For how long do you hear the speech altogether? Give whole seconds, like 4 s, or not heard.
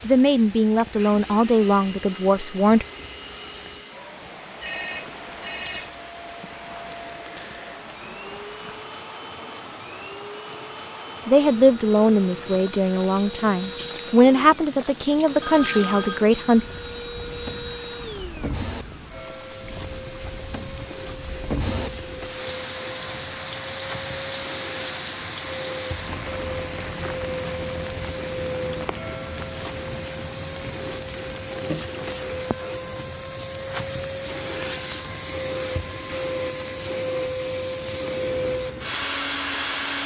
8 s.